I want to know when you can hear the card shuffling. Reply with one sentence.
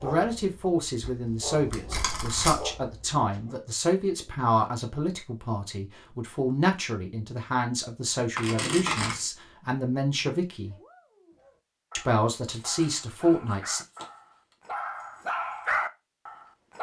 You can hear the card shuffling from 1.0 to 2.7 s, from 8.3 to 9.2 s and from 12.5 to 14.1 s.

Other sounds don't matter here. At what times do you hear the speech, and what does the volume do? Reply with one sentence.
You can hear the speech from 0.0 to 10.8 s, at a steady volume; and briefly from 11.9 to 13.8 s.